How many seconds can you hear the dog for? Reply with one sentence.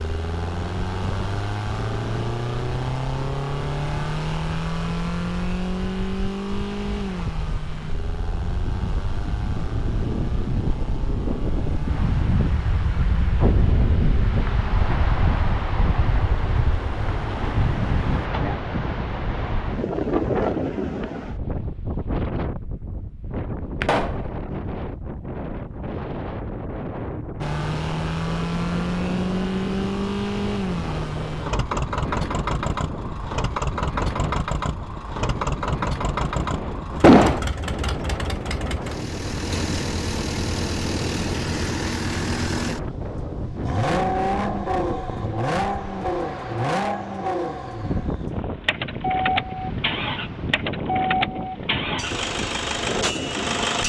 The dog can't be heard in this clip.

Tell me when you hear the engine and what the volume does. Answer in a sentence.
The engine can be heard from 0.0 to 18.3 s, getting quieter; and from 27.4 to 53.8 s, at a steady volume.